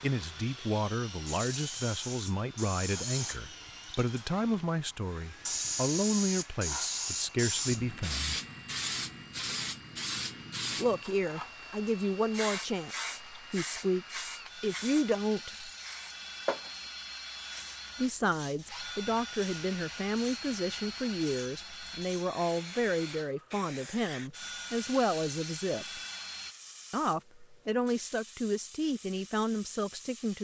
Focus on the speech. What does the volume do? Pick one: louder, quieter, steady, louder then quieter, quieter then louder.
steady.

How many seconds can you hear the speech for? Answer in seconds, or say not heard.
25 s.